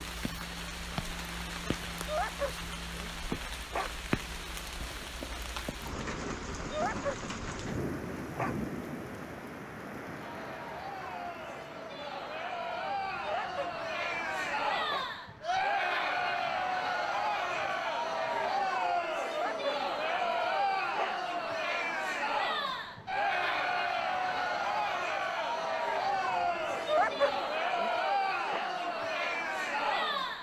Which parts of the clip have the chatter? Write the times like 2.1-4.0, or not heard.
10.2-30.3.